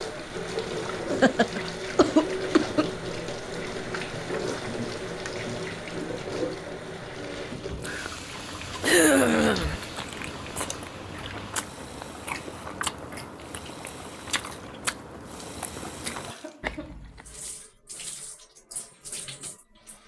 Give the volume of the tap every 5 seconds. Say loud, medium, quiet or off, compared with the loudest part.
loud, loud, quiet, quiet.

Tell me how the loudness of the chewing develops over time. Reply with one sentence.
The loudness of the chewing stays about the same.